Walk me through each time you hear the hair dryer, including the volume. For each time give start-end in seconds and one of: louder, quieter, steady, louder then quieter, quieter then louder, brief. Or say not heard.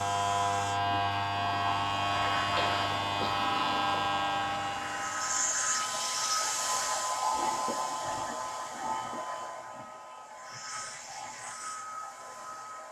0.0-12.8 louder then quieter.